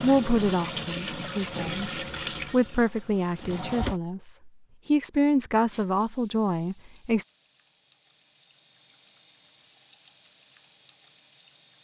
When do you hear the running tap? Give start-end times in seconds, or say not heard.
0.0-4.0, 5.7-11.7.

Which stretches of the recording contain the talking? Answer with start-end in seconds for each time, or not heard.
0.0-1.9, 2.5-7.2.